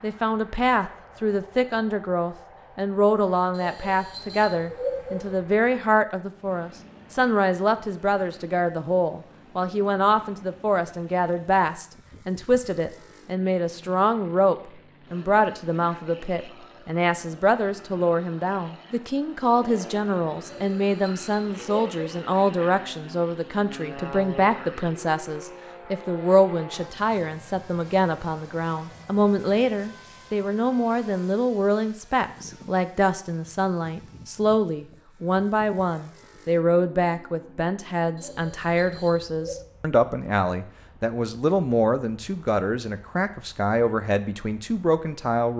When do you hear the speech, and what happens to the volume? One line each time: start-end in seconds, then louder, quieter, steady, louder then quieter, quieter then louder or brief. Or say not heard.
0.0-45.5 steady.